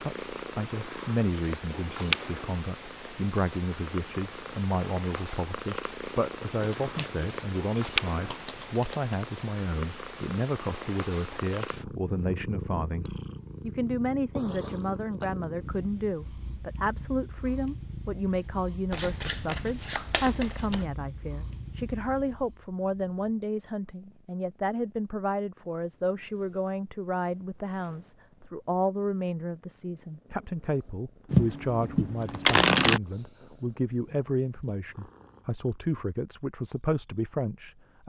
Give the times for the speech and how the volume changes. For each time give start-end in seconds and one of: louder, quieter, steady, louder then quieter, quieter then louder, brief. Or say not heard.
0.0-38.0 steady.